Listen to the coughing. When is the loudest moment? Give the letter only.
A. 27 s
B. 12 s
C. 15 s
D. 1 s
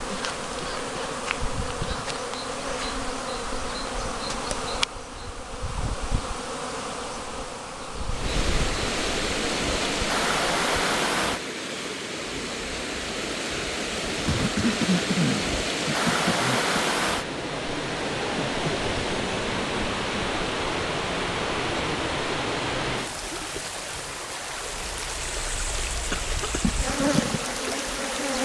C.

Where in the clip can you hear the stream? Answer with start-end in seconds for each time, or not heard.
8.1-28.4.